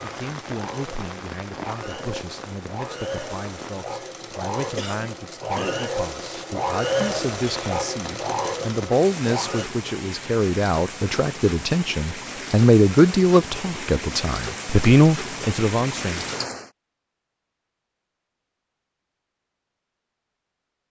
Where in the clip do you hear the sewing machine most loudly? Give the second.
7 s.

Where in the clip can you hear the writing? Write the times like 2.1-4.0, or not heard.
not heard.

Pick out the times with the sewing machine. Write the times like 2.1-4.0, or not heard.
0.0-9.7.